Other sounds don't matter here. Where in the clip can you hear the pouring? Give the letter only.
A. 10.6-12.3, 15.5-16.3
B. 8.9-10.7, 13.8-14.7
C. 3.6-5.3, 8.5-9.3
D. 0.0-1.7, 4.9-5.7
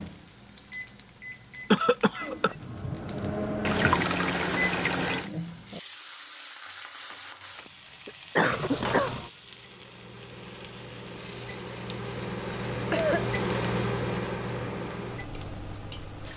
C.